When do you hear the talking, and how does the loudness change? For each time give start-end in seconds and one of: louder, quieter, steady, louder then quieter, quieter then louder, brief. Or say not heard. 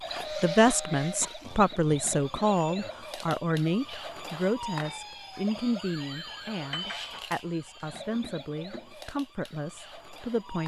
0.1-10.6 quieter.